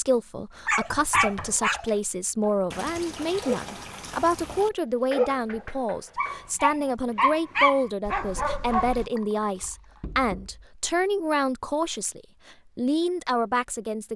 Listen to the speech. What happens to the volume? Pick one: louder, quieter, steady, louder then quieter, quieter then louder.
steady.